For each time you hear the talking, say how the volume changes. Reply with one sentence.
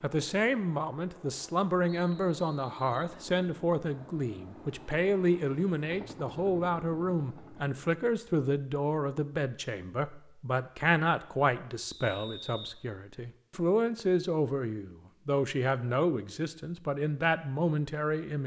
You can hear the talking from 0.0 to 18.4 s, at a steady volume.